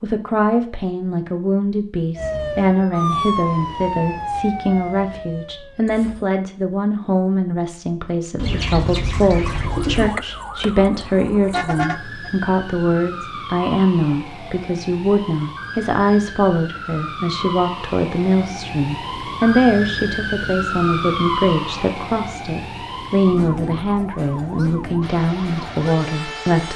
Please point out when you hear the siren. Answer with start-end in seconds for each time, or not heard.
2.1-6.2, 9.4-26.7.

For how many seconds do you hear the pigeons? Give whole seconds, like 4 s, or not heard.
2 s.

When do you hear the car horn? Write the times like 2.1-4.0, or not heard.
11.4-12.3.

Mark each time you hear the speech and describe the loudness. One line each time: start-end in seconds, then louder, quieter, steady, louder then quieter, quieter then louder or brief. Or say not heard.
0.0-26.7 steady.